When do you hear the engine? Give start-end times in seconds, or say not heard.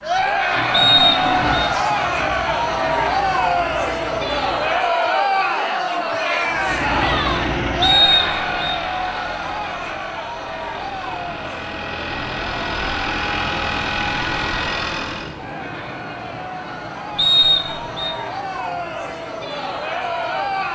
0.0-5.0, 6.5-15.4.